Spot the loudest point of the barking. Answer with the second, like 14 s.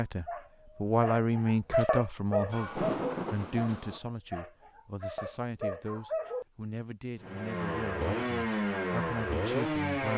2 s.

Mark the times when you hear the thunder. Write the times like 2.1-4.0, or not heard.
2.5-4.0.